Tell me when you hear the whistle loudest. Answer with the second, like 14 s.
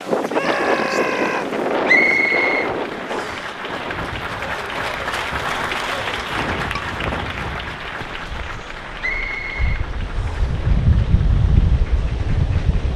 2 s.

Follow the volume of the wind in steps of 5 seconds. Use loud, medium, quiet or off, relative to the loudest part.
loud, medium, loud.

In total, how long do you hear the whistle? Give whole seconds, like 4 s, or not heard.
3 s.